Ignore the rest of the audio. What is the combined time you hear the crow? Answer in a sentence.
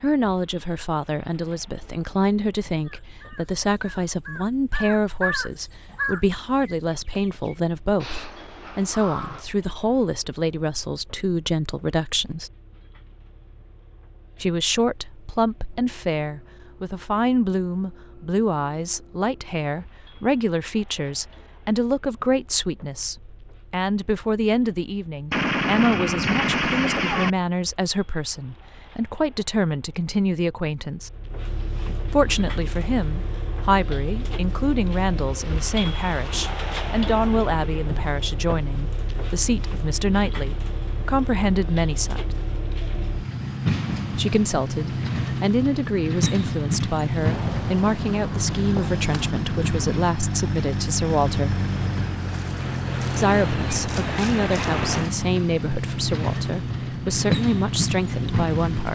You can hear the crow for 7 seconds altogether.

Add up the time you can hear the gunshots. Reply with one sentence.
You can hear the gunshots for 4 seconds altogether.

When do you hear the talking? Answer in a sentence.
You can hear the talking from 0.0 to 12.5 s, from 14.4 to 31.1 s, from 32.1 to 42.2 s, from 44.1 to 51.6 s and from 53.1 to 58.9 s.